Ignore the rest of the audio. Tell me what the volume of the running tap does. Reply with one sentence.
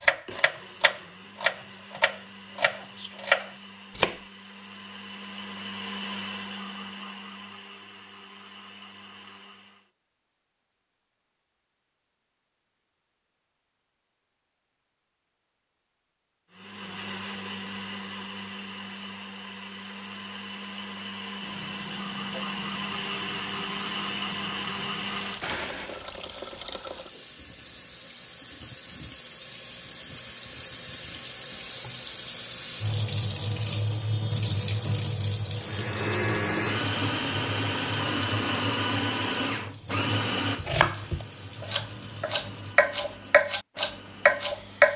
The loudness of the running tap goes up, then down.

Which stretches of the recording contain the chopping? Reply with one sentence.
You can hear the chopping from 0.0 to 4.2 s and from 40.5 to 44.9 s.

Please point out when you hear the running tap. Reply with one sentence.
You can hear the running tap from 21.4 to 42.8 s.